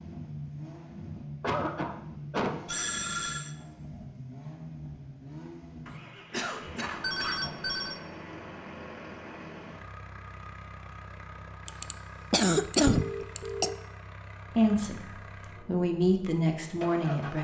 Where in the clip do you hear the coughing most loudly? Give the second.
13 s.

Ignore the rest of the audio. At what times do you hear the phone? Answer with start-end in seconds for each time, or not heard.
2.6-3.5, 7.0-8.0, 12.9-13.8.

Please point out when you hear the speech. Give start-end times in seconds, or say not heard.
14.6-17.3.